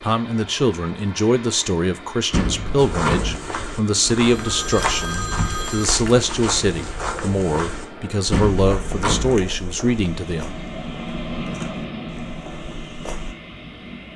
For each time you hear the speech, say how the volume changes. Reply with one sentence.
You can hear the speech from 0.0 to 10.5 s, at a steady volume.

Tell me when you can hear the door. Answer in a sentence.
The door can be heard from 2.3 to 3.4 s and from 8.3 to 9.3 s.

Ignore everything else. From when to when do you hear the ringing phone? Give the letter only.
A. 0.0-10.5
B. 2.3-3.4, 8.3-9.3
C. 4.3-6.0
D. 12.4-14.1
C.